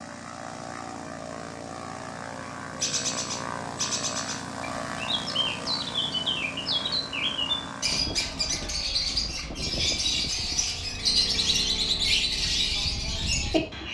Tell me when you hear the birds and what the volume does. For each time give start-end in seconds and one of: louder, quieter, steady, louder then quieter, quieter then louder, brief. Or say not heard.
2.8-13.8 louder.